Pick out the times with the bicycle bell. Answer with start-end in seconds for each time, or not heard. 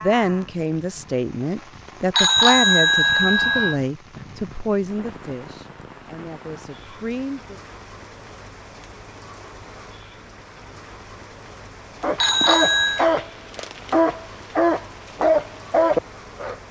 2.1-3.8, 12.2-13.1.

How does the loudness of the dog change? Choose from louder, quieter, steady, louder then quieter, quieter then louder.
quieter then louder.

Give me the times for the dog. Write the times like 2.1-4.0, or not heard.
12.0-16.6.